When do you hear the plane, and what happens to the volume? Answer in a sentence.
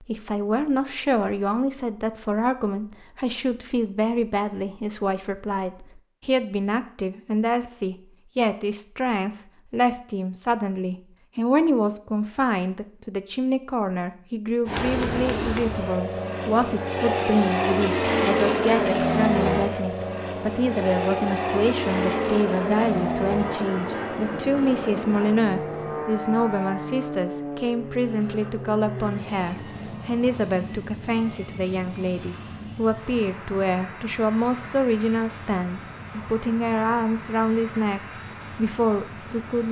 The plane can be heard from 14.7 to 39.6 s, getting quieter.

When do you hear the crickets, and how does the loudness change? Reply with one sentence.
You can't hear the crickets here.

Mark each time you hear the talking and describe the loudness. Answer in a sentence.
You can hear the talking from 0.0 to 39.6 s, at a steady volume.